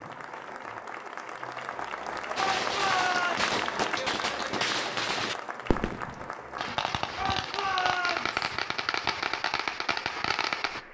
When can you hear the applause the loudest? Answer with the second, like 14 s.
3 s.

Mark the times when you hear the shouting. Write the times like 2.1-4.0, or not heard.
2.4-3.5, 7.2-8.3.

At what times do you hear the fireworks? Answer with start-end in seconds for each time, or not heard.
2.4-10.8.